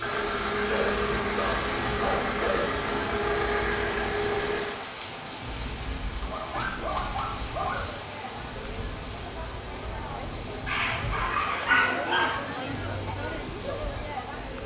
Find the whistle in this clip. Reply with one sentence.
You can't hear the whistle here.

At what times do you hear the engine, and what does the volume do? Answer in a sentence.
You can hear the engine from 0.0 to 4.8 s, at a steady volume.